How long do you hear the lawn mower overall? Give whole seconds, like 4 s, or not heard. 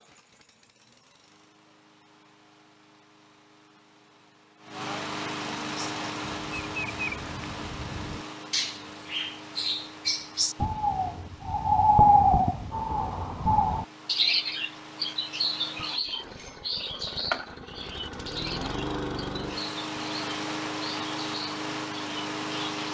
23 s.